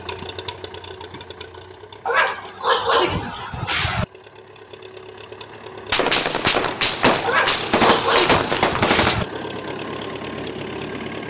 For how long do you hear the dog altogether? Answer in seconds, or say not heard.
4 s.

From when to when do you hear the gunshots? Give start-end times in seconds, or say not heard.
5.9-9.2.